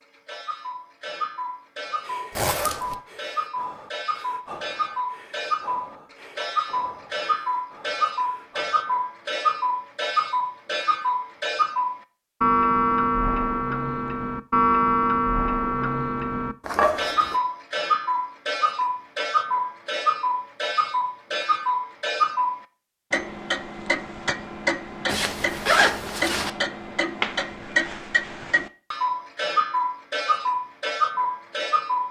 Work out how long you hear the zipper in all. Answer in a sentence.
The zipper can be heard for 3 seconds in total.